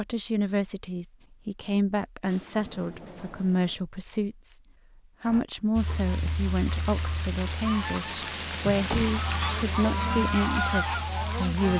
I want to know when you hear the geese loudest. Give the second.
11 s.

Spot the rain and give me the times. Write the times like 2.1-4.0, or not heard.
5.8-11.7.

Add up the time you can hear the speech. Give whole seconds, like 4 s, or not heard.
11 s.